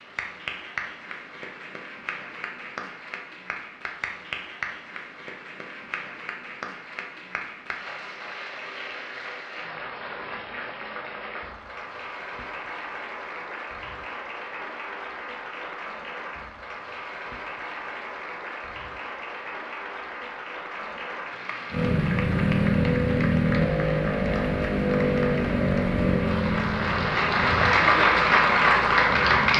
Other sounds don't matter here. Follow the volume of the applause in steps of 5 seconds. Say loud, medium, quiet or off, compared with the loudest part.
quiet, quiet, quiet, quiet, quiet, loud.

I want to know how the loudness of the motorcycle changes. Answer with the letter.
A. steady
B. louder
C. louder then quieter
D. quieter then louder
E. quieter
E.